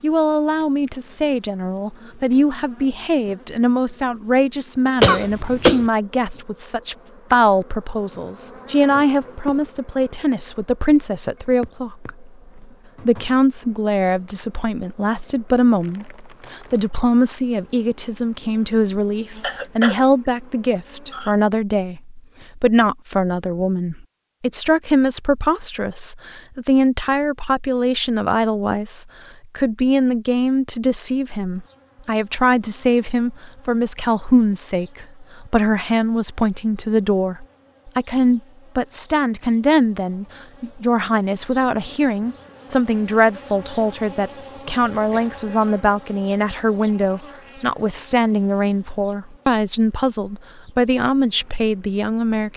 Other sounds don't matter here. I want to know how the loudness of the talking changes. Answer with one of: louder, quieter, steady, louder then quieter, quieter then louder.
steady.